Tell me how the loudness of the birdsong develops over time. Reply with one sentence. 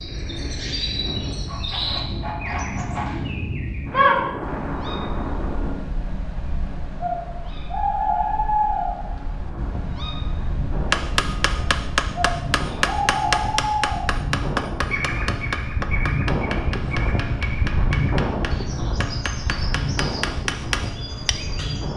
The loudness of the birdsong goes down.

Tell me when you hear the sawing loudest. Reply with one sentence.
The loudest moment of the sawing is at 3 seconds.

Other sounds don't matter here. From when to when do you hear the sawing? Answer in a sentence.
The sawing can be heard from 1.4 to 3.2 s.